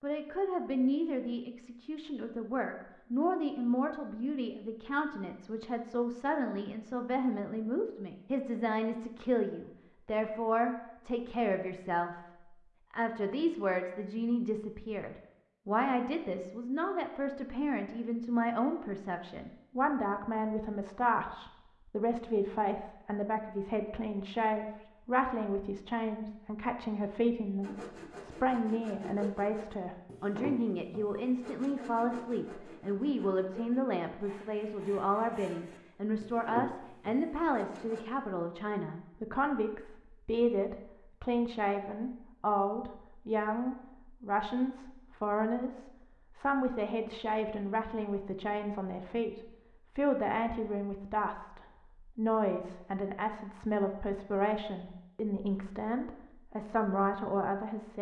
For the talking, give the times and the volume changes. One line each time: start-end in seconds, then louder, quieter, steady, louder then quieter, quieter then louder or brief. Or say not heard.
0.0-57.9 steady.